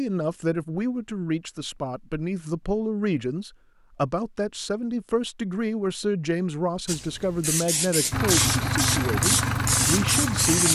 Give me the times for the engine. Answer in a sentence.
You can hear the engine from 8.1 to 10.6 s.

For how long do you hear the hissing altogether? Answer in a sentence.
You can hear the hissing for 4 seconds altogether.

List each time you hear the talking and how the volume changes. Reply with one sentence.
You can hear the talking from 0.0 to 10.6 s, at a steady volume.